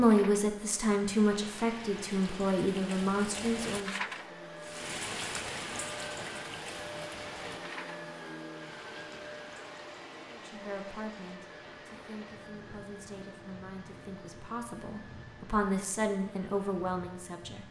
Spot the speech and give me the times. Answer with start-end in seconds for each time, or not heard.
0.0-4.0, 10.3-17.6.